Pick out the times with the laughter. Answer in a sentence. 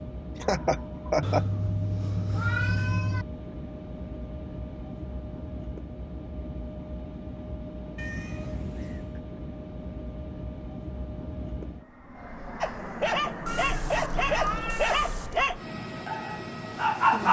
You can hear the laughter from 0.3 to 1.4 s.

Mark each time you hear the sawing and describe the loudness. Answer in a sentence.
The sawing can't be heard in this clip.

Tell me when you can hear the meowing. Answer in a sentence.
The meowing can be heard from 1.2 to 3.2 s, from 8.0 to 9.2 s and from 13.4 to 15.6 s.